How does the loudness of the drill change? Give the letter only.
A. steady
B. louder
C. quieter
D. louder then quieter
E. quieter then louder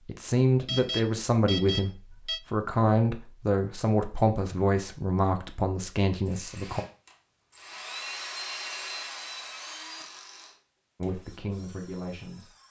D.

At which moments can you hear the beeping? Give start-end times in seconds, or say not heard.
0.7-2.4.